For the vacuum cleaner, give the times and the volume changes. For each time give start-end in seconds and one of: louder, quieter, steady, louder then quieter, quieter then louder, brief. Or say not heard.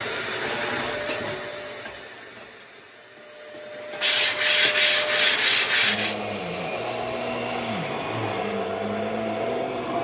0.0-10.0 quieter then louder.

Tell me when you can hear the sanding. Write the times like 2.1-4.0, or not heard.
4.0-6.2.